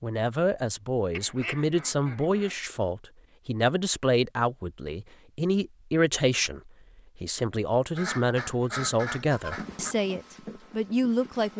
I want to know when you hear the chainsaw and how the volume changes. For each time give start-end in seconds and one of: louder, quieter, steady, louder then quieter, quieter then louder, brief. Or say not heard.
not heard.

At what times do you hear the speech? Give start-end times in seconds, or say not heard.
0.0-11.5.